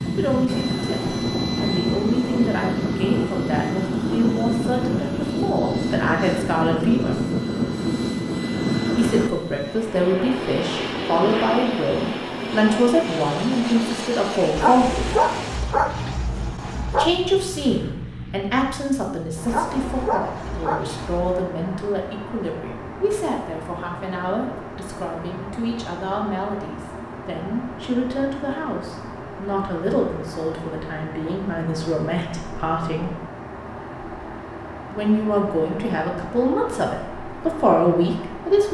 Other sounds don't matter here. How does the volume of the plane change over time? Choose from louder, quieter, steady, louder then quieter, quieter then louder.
quieter.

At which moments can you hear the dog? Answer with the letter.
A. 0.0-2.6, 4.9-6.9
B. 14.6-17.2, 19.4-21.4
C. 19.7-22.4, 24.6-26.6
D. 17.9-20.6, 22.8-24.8
B.